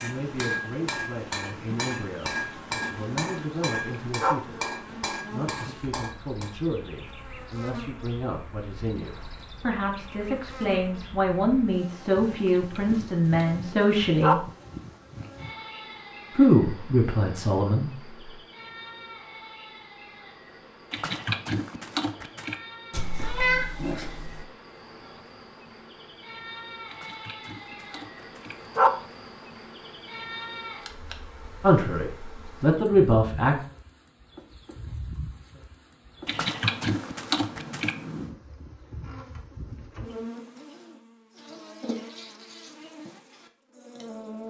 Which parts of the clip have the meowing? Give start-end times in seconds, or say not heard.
22.9-24.4.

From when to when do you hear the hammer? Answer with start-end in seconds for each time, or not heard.
0.0-6.5.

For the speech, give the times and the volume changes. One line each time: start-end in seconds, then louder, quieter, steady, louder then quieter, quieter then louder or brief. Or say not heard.
0.0-14.4 louder
16.3-18.3 brief
31.6-33.6 brief.